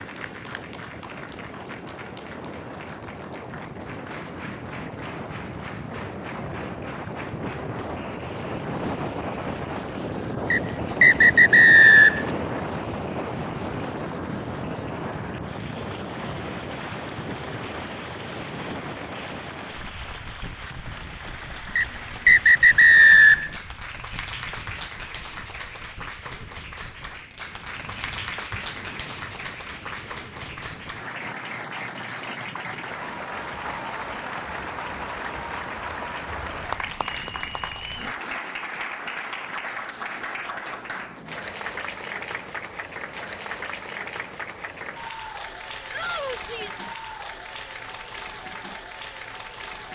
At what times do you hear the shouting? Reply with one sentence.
You can hear the shouting from 45.9 to 46.9 s.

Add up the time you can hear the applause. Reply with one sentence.
You can hear the applause for 50 seconds altogether.